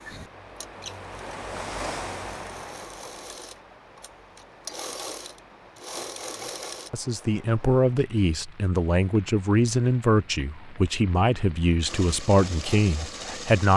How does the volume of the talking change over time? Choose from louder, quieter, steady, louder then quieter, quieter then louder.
steady.